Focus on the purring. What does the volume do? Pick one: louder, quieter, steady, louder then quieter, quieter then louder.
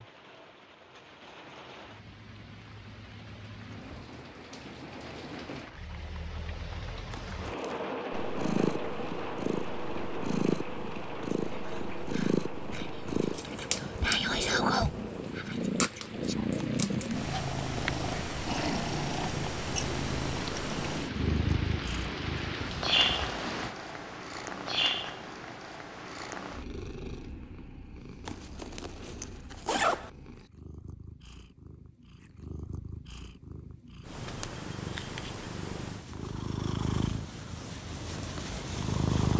quieter then louder.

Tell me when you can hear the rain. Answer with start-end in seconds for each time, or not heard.
0.0-23.8.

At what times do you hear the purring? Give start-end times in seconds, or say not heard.
8.1-39.3.